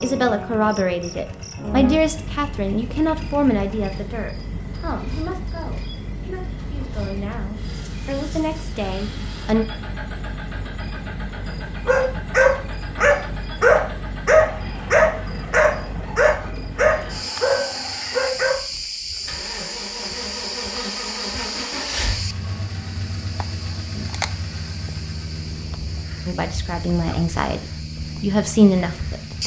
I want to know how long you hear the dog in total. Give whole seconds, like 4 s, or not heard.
7 s.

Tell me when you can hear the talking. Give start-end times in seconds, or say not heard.
0.0-9.7, 26.2-29.4.